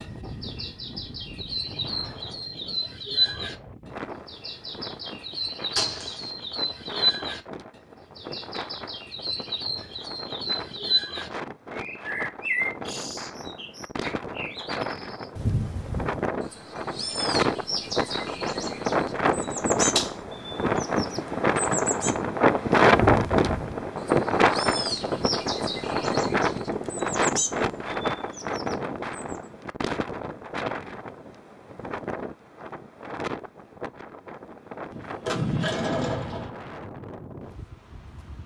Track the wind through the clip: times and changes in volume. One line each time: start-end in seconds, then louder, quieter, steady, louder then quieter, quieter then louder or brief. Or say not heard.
0.0-38.4 louder then quieter.